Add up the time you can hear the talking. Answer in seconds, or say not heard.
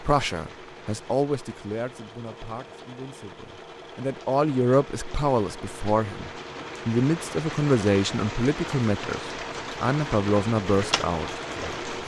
12 s.